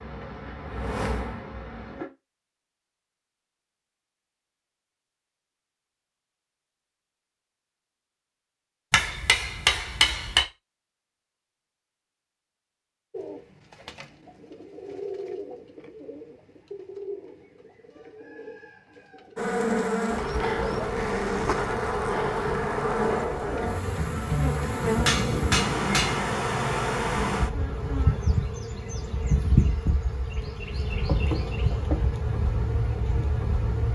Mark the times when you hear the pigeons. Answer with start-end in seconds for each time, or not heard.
13.1-19.6.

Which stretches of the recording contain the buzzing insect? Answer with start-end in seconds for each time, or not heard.
0.0-2.1, 19.4-33.9.